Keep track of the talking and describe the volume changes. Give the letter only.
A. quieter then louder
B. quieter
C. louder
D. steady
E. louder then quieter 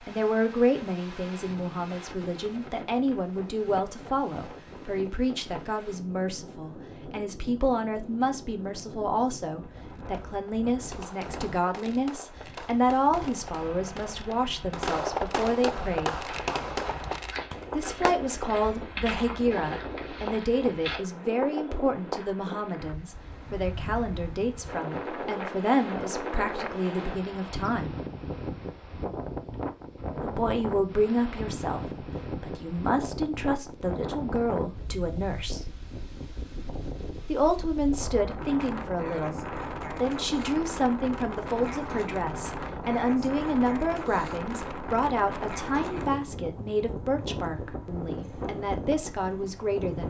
D.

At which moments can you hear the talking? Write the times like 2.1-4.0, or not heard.
0.1-16.2, 17.7-27.9, 30.2-35.6, 37.2-50.0.